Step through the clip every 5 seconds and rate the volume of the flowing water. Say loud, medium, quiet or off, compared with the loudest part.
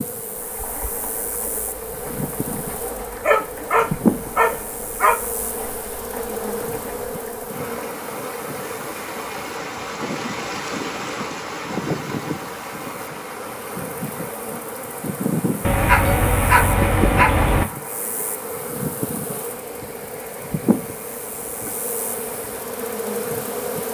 medium, loud, loud, medium, medium.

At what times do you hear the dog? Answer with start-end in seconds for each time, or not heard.
3.0-5.2, 15.6-17.6.